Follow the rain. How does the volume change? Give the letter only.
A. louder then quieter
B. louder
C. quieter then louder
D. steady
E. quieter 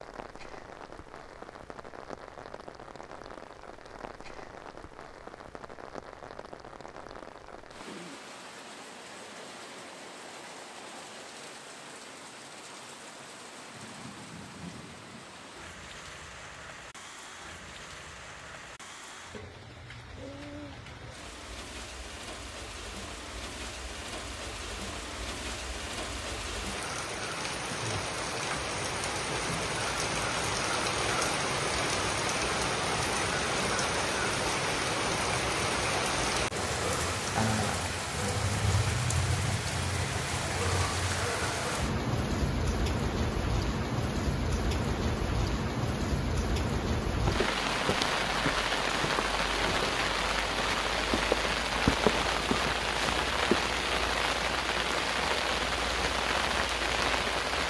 B.